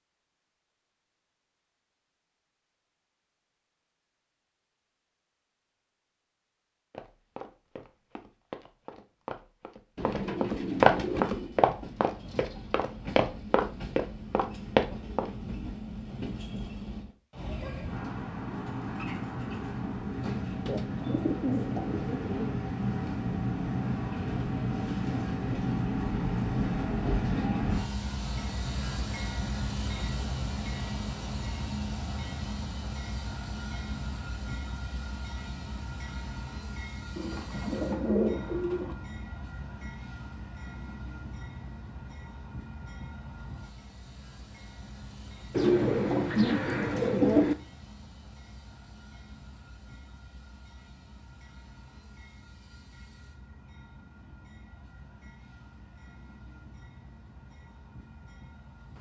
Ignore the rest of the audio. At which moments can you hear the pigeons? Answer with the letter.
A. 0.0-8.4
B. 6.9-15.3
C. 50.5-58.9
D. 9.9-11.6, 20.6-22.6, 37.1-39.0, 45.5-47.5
D.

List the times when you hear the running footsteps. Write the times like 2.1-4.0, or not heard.
6.9-15.3.